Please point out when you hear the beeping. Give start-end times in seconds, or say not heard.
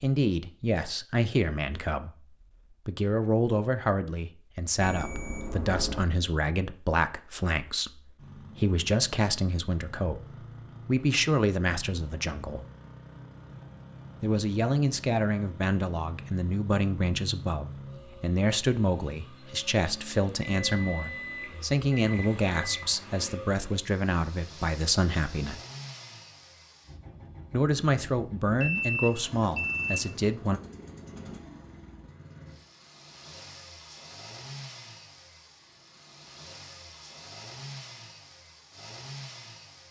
4.8-6.0, 20.4-22.9, 28.5-30.1.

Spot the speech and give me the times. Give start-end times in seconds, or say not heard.
0.0-12.7, 14.2-25.6, 27.5-30.6.